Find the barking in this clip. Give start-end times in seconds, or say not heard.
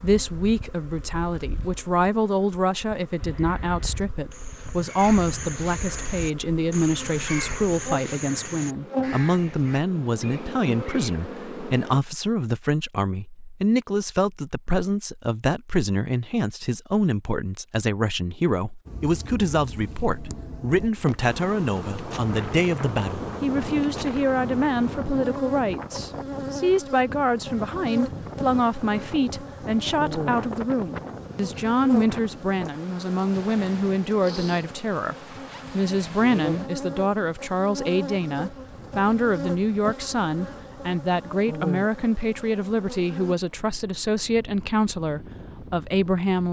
not heard.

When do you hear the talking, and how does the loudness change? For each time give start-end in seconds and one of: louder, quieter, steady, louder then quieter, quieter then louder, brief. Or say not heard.
0.0-46.4 steady.